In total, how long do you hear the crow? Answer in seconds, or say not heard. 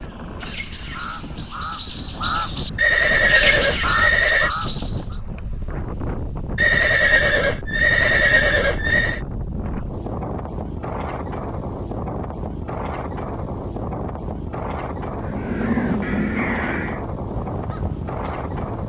9 s.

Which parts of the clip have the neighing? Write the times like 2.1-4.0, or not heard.
2.8-4.5, 6.5-9.2, 16.0-17.1.